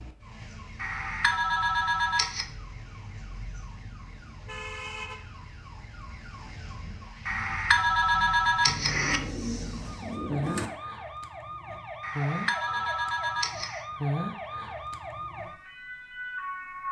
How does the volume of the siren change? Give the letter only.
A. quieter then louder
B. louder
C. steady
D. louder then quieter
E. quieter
B.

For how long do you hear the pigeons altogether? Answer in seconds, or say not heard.
2 s.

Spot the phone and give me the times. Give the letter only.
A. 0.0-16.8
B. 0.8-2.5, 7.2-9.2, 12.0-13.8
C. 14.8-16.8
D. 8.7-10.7
B.